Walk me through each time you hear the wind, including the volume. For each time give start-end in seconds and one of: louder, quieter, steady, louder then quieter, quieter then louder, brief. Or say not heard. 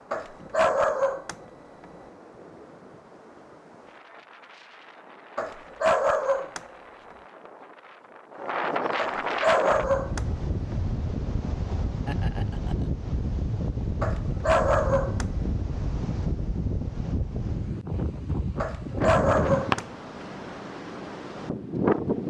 0.0-22.2 louder.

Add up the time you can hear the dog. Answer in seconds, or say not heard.
6 s.